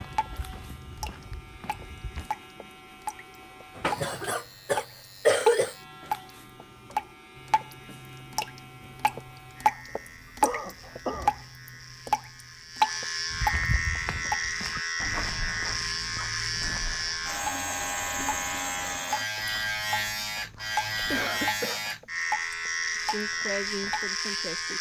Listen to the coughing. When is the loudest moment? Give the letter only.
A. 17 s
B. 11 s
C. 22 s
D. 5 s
D.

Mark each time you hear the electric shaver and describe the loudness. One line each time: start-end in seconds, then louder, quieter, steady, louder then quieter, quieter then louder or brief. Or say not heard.
0.0-24.7 louder.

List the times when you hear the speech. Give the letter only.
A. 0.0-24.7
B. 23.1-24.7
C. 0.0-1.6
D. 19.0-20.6
B.